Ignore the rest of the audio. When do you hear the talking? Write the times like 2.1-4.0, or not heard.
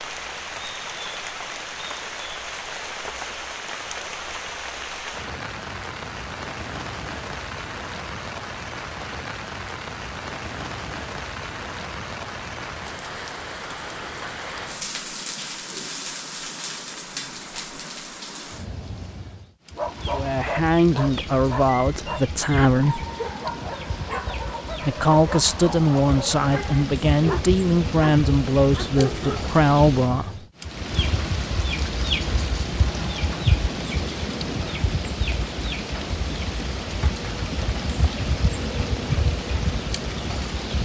20.1-23.0, 24.8-30.3.